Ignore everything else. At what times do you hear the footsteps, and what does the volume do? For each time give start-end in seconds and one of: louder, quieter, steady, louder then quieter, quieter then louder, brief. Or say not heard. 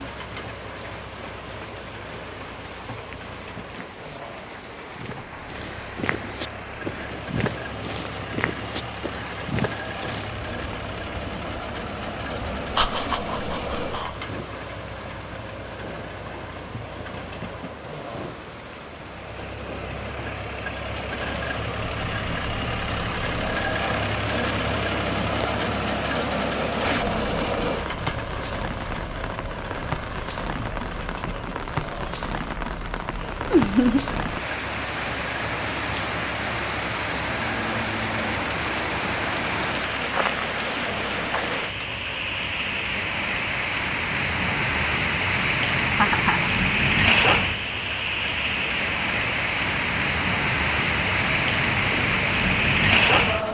3.2-10.7 louder.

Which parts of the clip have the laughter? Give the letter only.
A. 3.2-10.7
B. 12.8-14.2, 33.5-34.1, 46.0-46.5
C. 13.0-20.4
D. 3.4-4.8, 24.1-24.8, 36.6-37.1
B.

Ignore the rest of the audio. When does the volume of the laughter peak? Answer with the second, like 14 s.
34 s.